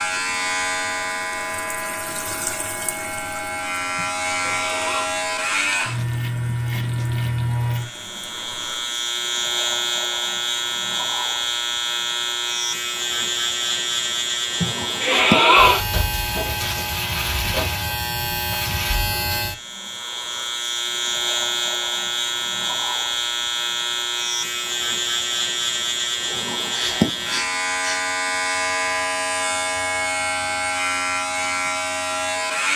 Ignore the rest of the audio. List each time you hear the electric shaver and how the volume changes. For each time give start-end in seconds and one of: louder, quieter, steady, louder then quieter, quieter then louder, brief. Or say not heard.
0.0-32.7 steady.